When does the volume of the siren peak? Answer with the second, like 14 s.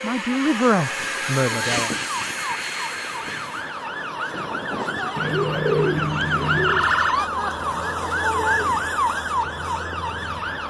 7 s.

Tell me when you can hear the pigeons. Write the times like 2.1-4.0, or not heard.
5.2-6.8.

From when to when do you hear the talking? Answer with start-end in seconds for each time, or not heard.
0.0-1.9.